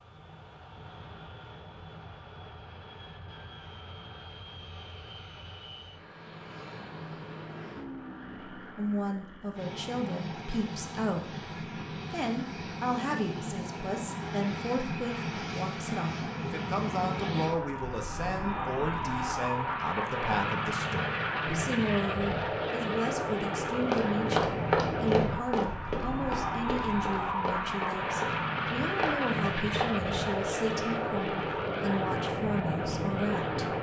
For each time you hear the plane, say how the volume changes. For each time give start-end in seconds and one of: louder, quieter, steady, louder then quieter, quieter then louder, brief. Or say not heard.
0.0-33.7 louder.